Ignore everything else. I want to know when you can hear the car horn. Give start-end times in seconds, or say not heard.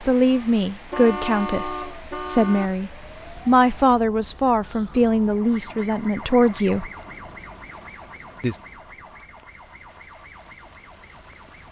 0.9-2.7.